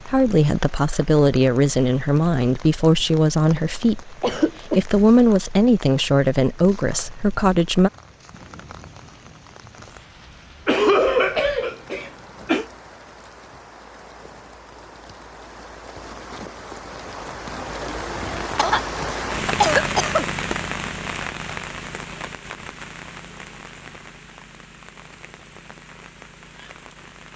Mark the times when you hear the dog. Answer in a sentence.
The dog can't be heard in this clip.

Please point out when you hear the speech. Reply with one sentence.
You can hear the speech from 0.0 to 7.9 s.